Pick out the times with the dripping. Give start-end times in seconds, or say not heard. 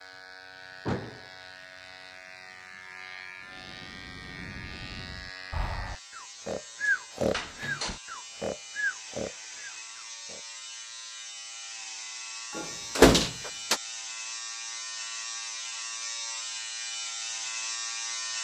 not heard.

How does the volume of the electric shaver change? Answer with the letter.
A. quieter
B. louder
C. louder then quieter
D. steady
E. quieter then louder
B.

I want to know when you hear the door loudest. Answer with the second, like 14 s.
13 s.